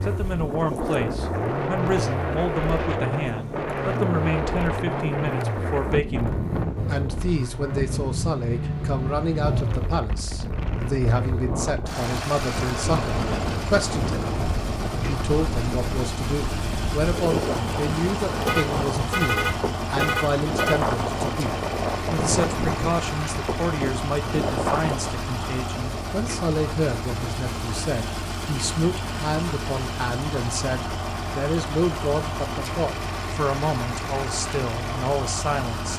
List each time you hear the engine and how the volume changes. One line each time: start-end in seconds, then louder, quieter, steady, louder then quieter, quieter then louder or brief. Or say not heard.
0.0-35.9 steady.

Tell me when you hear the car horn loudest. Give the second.
19 s.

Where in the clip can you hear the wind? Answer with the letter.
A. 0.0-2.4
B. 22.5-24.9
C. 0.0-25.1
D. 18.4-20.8
C.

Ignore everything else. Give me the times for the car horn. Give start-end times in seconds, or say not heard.
18.4-20.8.